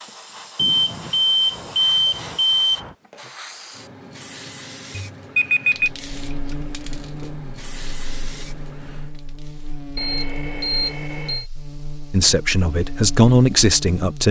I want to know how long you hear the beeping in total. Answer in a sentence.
You can hear the beeping for 5 seconds altogether.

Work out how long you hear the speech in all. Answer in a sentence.
You can hear the speech for 2 seconds altogether.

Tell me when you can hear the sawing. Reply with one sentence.
The sawing can't be heard in this clip.